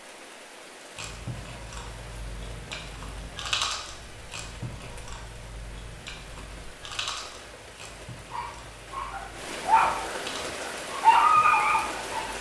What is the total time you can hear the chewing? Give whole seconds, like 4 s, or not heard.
11 s.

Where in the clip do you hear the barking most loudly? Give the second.
11 s.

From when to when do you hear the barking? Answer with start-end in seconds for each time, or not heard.
8.3-12.3.